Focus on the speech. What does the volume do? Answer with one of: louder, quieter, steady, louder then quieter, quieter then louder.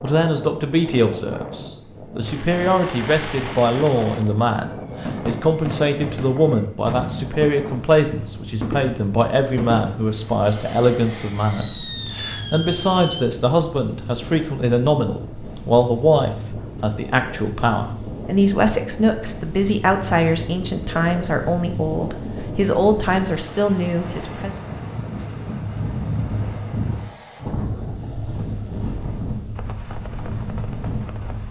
steady.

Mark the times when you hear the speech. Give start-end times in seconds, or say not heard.
0.0-24.5.